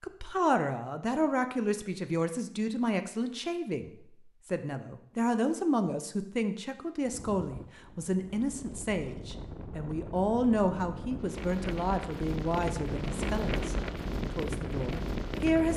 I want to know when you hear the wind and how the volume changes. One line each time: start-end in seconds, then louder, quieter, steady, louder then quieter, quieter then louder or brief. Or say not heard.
7.0-15.7 louder.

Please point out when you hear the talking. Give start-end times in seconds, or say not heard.
0.0-15.7.